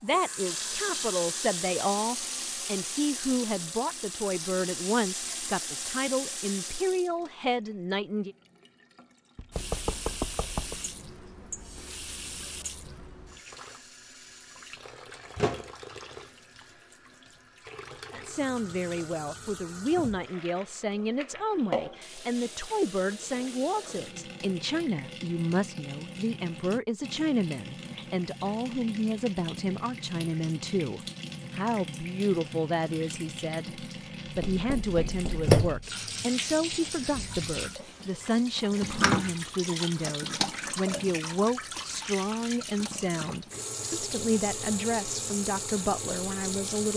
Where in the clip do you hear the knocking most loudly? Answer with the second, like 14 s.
10 s.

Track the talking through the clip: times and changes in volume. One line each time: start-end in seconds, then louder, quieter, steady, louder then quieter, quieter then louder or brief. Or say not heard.
0.0-8.3 steady
18.1-46.9 steady.